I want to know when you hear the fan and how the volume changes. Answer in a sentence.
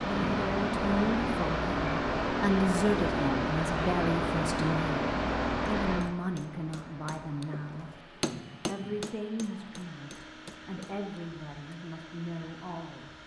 You can hear the fan from 0.0 to 13.2 s, getting quieter.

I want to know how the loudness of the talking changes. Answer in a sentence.
The volume of the talking goes down.